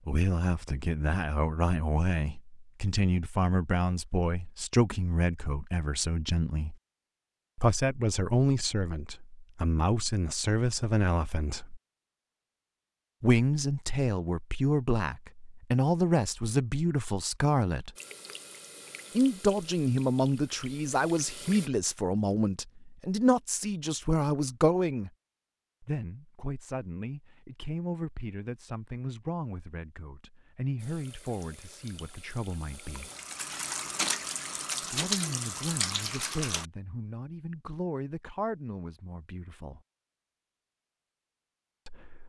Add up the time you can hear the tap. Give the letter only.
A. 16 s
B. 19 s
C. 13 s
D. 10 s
D.